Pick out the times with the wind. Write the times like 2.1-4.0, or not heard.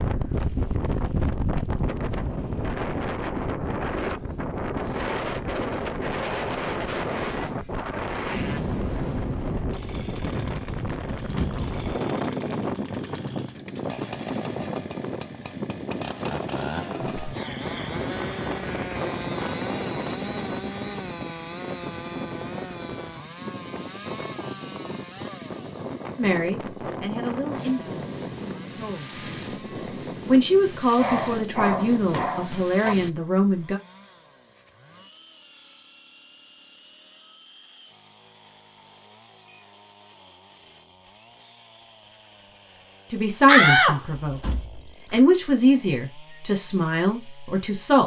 0.0-33.1.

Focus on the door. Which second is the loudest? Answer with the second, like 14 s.
44 s.